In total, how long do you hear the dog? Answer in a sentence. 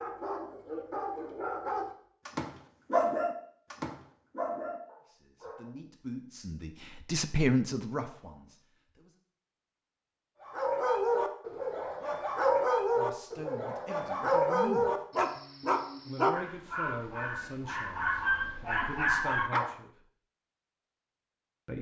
The dog can be heard for 15 seconds in total.